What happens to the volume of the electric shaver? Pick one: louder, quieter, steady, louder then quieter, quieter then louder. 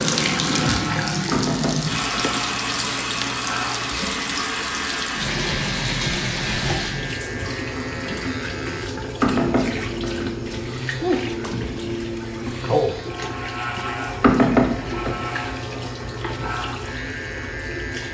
steady.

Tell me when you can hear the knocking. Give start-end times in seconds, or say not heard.
1.3-2.0, 9.2-10.2, 14.2-15.2.